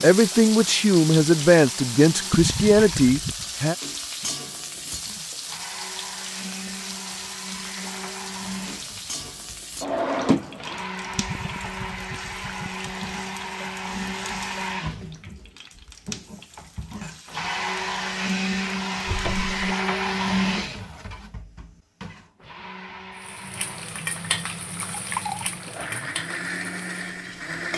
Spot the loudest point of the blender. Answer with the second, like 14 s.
20 s.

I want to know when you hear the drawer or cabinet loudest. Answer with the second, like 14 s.
10 s.